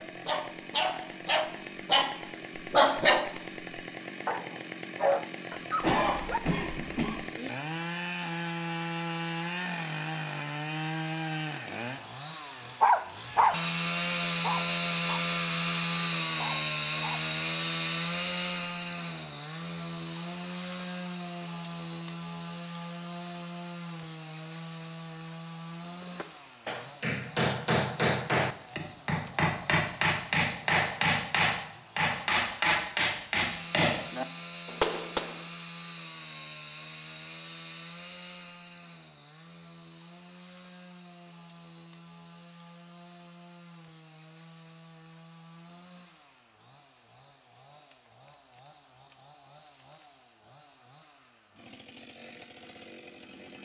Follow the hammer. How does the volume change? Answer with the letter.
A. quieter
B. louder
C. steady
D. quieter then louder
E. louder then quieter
C.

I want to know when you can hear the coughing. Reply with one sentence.
The coughing can be heard from 5.8 to 7.2 s.